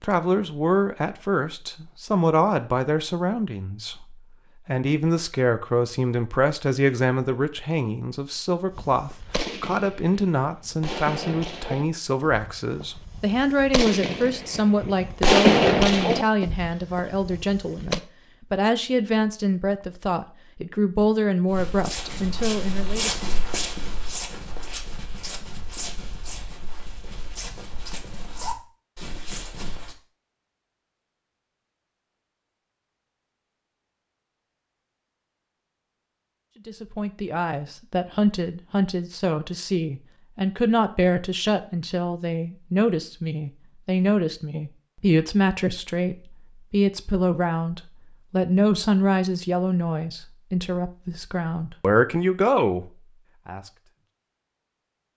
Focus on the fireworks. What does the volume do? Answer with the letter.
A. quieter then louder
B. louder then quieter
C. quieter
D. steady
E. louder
B.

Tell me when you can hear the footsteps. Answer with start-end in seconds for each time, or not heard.
21.4-29.9.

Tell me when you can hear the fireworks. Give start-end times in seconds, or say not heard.
8.8-18.0.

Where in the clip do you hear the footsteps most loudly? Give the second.
23 s.